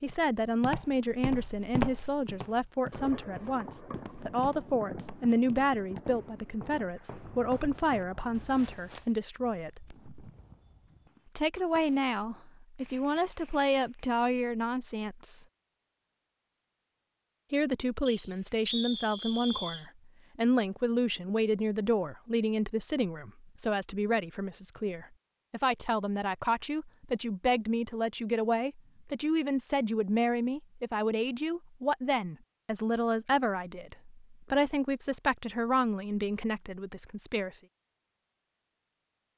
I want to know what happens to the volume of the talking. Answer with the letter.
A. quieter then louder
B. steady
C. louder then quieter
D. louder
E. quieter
B.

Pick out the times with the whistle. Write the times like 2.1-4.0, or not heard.
18.1-19.9.